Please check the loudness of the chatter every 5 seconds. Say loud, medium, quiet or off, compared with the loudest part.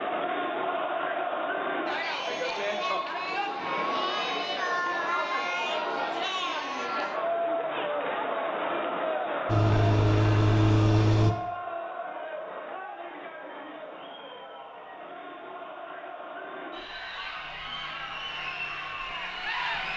loud, loud, medium, medium.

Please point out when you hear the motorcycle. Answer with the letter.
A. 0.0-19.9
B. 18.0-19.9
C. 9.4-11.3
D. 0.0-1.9
C.